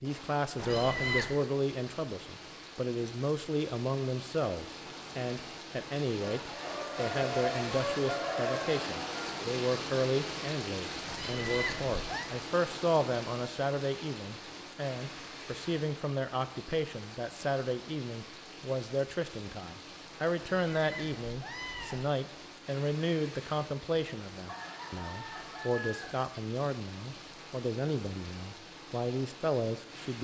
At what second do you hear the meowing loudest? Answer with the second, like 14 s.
1 s.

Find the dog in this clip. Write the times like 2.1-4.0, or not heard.
not heard.